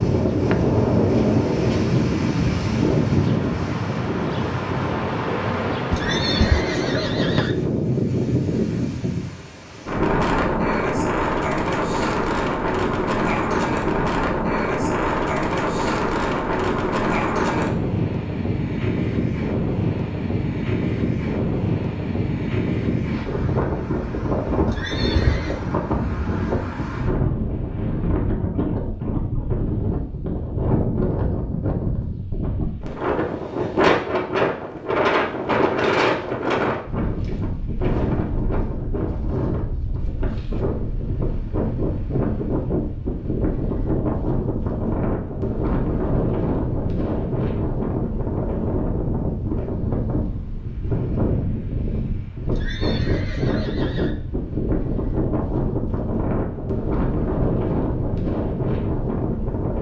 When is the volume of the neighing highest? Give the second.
6 s.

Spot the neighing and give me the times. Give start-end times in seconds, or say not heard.
5.9-7.5, 24.6-25.6, 52.5-54.1.